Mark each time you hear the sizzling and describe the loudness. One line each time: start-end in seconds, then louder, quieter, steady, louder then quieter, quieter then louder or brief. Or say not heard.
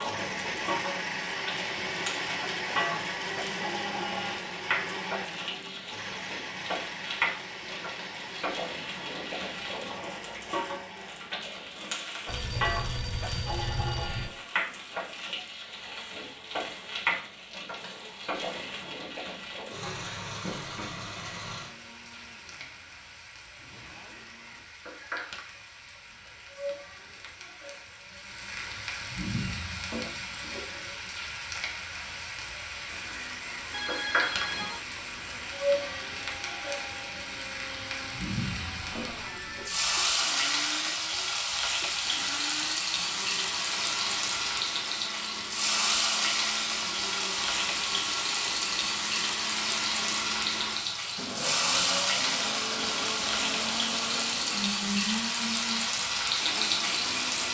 0.0-57.4 louder.